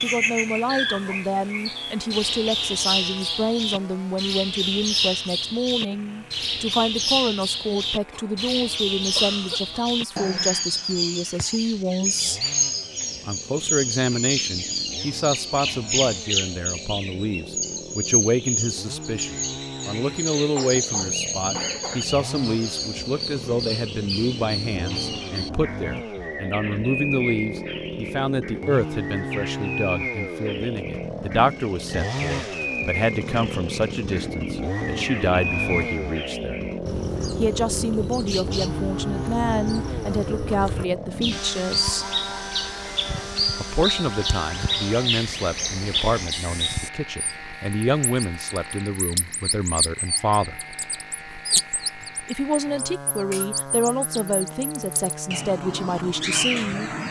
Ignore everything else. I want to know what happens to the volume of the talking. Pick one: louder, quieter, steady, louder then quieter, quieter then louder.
steady.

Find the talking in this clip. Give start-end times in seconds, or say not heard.
0.0-12.4, 13.2-36.6, 37.4-42.1, 43.5-50.5, 52.2-56.9.